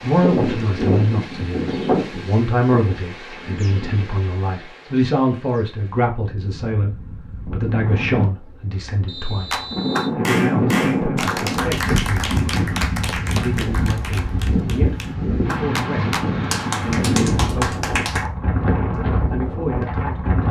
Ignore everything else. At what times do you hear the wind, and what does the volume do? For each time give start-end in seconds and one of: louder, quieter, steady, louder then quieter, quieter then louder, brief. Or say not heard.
0.0-20.4 quieter then louder.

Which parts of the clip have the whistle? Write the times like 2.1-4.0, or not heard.
9.1-10.2.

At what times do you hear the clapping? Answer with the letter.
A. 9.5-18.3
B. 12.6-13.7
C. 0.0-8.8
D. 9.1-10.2
A.